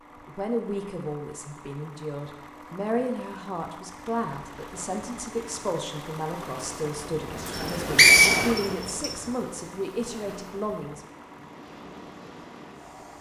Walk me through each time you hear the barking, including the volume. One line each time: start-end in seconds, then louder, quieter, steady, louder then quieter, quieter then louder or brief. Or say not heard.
not heard.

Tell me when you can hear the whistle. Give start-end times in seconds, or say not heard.
7.5-9.1.